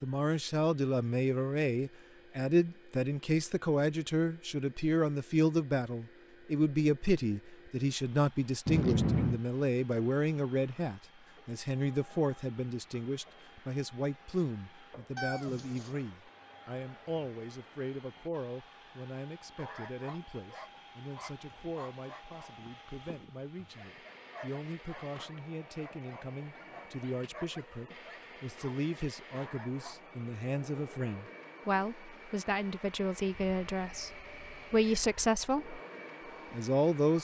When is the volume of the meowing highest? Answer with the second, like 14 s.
9 s.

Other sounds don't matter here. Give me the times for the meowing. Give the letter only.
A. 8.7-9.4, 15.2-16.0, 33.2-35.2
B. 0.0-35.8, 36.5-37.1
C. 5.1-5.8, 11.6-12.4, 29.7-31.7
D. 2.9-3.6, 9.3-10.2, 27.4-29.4
A.